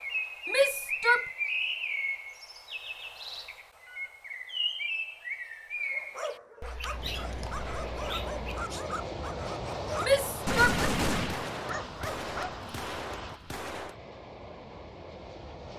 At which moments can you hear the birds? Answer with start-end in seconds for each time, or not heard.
0.0-8.8.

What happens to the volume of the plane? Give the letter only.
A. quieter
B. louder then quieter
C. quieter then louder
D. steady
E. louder
A.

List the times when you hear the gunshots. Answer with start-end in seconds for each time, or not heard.
10.4-13.9.